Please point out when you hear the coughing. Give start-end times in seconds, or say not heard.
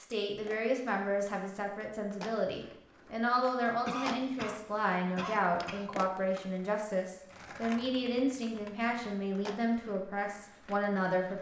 3.9-5.9.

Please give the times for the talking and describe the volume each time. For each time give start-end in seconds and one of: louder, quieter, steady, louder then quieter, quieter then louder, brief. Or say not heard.
0.0-11.3 steady.